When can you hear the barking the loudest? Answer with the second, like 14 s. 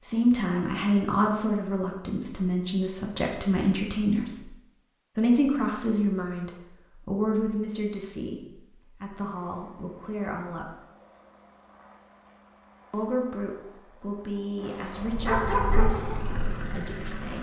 15 s.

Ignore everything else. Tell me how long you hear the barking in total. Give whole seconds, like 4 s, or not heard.
2 s.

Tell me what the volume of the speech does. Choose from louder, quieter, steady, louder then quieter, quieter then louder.
quieter.